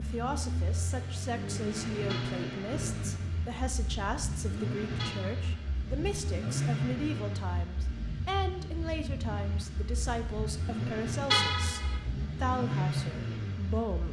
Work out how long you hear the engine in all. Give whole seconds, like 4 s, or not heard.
14 s.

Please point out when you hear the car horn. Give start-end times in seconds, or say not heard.
2.0-2.5, 5.0-5.7, 11.3-11.9.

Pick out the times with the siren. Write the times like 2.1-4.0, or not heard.
not heard.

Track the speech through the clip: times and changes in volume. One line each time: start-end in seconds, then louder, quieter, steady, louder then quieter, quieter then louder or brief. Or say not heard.
0.0-14.0 steady.